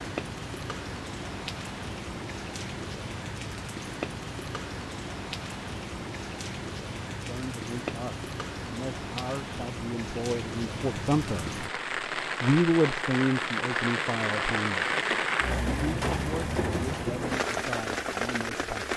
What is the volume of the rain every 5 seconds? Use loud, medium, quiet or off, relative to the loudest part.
medium, medium, loud, loud.